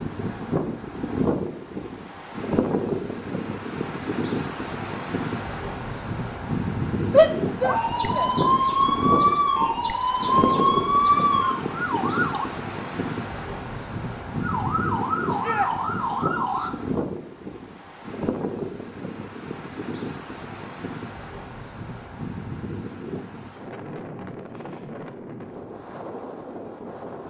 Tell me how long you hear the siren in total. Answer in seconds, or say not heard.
7 s.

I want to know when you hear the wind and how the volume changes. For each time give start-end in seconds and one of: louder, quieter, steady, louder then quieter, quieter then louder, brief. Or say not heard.
0.0-27.2 quieter.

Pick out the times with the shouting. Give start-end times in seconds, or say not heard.
7.1-8.3, 15.2-15.7.